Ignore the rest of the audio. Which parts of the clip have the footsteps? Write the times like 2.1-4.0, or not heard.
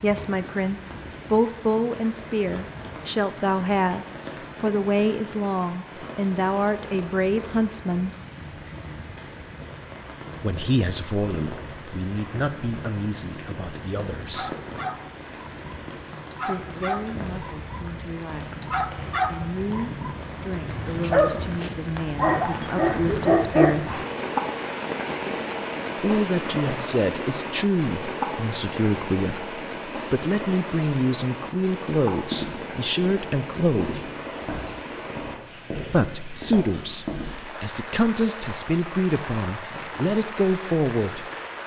32.3-37.5.